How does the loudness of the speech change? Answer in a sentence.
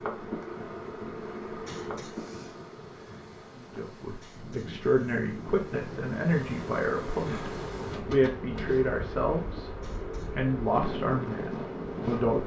The volume of the speech stays about the same.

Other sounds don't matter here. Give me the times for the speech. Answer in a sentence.
You can hear the speech from 3.5 to 12.4 s.